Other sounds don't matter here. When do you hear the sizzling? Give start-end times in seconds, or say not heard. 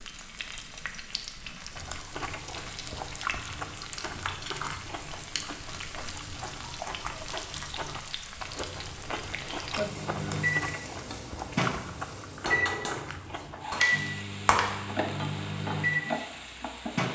0.0-17.0.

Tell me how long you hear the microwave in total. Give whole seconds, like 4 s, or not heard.
7 s.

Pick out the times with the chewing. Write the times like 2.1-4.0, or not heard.
1.7-13.7.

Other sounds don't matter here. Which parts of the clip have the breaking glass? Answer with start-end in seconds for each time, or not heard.
13.7-14.7.